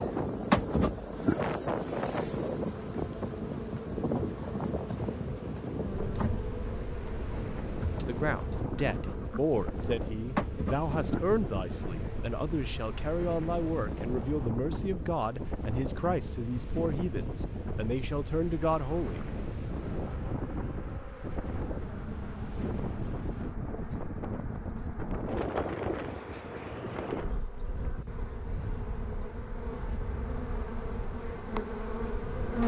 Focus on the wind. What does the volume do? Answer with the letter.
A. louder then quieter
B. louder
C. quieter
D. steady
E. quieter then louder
C.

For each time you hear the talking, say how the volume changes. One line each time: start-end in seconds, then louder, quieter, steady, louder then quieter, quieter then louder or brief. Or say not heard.
7.9-19.2 steady.